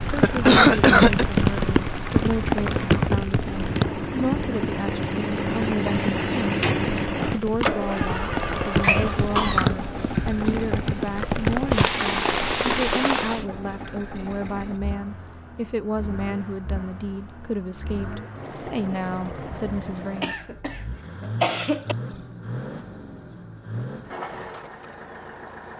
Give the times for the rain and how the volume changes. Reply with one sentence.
The rain can be heard from 0.0 to 13.4 s, getting quieter then louder.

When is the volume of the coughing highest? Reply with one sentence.
The volume of the coughing peaks at 1 second.